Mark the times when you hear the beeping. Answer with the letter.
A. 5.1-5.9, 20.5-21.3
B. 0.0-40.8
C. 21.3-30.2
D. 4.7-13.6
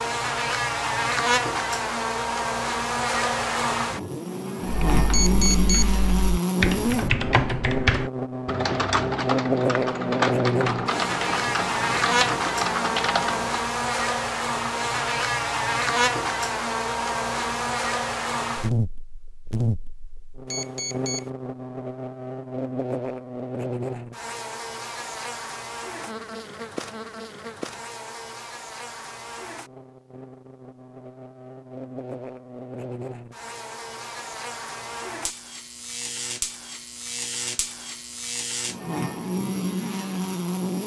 A.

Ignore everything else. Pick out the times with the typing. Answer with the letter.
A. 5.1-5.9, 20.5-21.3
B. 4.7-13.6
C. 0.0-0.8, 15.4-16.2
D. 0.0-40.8
B.